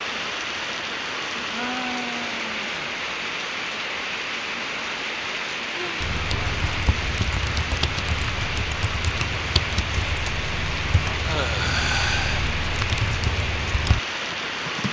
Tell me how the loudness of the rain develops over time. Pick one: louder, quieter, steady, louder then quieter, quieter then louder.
steady.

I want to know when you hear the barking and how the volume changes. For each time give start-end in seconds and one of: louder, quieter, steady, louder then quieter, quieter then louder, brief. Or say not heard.
not heard.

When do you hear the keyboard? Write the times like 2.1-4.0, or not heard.
6.0-14.8.